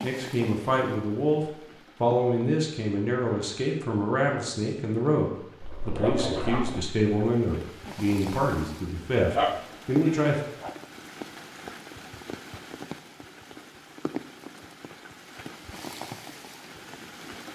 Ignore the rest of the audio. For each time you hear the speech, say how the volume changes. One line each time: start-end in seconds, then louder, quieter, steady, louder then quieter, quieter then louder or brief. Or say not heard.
0.0-10.4 steady.